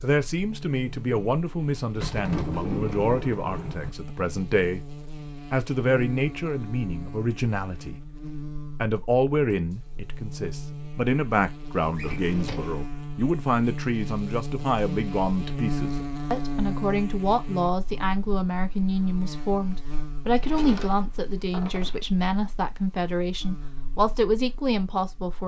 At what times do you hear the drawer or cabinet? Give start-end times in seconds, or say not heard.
1.9-3.9, 11.9-12.8, 20.3-22.1.